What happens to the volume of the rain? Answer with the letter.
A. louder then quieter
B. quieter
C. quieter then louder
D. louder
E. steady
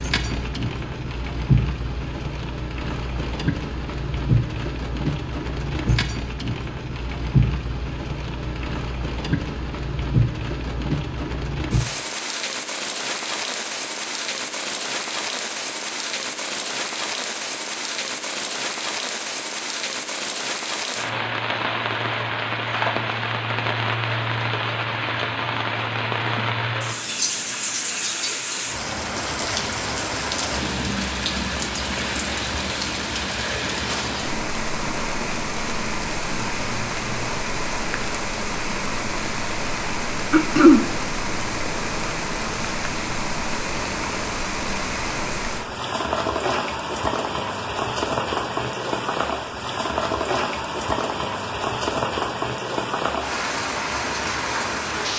E.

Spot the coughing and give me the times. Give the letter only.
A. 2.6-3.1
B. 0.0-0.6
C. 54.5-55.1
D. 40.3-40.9
D.